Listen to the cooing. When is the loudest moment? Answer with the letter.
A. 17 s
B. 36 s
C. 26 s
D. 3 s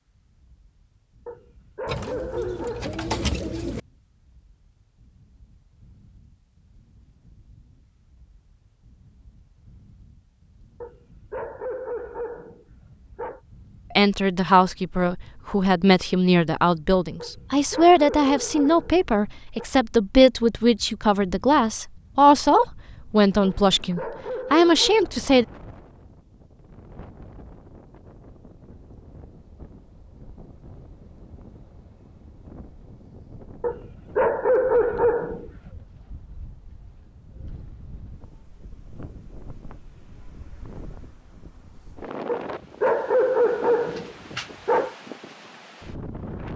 D.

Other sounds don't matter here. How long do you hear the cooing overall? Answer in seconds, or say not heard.
2 s.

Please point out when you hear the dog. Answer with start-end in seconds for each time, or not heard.
1.2-3.0, 10.8-13.4, 17.2-19.6, 23.4-25.1, 33.6-35.7, 42.2-45.0.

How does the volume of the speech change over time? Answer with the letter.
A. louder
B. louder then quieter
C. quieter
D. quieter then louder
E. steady
E.